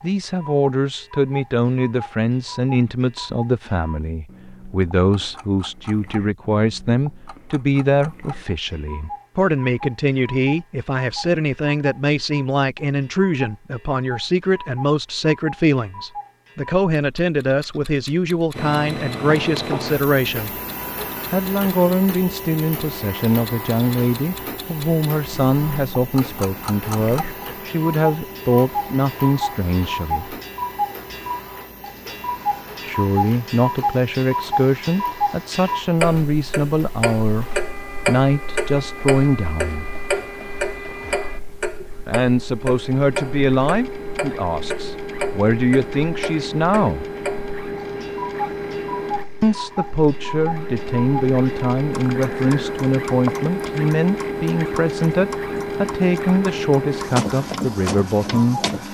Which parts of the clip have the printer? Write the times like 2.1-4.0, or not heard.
18.5-58.9.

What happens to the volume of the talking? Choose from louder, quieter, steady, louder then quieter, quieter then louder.
steady.